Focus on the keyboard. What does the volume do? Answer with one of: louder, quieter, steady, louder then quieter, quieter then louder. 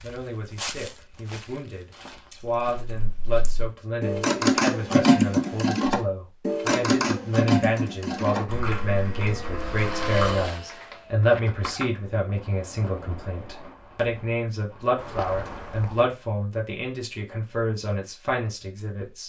louder then quieter.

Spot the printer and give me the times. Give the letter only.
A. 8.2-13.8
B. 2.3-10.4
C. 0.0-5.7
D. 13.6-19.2
A.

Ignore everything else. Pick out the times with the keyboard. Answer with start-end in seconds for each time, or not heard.
2.3-10.4.